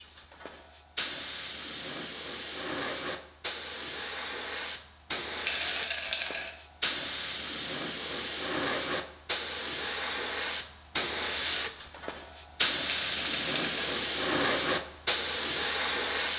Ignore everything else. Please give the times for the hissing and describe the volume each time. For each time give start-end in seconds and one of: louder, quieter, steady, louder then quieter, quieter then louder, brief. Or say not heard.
0.0-16.3 louder.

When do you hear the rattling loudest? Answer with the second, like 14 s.
6 s.